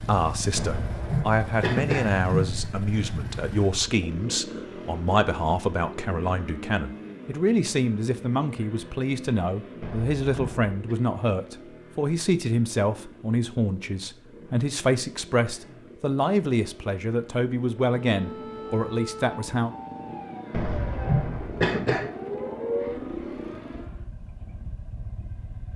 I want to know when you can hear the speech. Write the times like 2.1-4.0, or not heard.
0.0-19.7.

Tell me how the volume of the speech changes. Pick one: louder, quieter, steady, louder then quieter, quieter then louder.
steady.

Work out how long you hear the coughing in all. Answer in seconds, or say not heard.
5 s.